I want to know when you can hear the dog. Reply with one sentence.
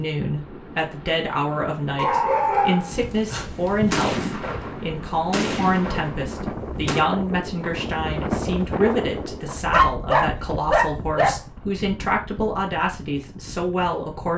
The dog can be heard from 1.9 to 3.8 s and from 9.7 to 11.3 s.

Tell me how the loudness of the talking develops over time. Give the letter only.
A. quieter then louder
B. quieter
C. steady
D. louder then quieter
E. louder
C.